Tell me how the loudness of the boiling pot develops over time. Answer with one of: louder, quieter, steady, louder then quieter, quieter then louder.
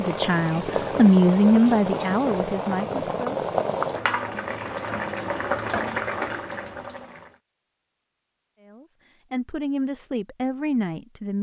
steady.